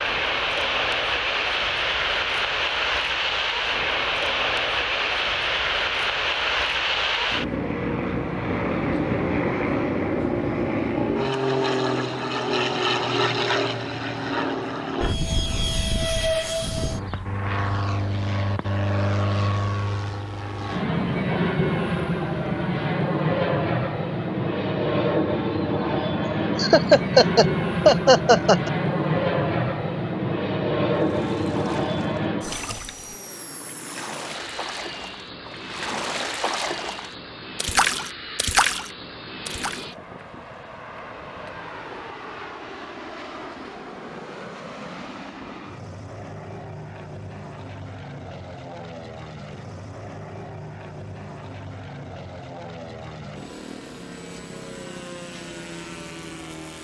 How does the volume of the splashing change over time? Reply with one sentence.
The loudness of the splashing goes up.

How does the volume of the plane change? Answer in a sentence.
The loudness of the plane goes down.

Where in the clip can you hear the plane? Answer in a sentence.
The plane can be heard from 0.0 to 56.7 s.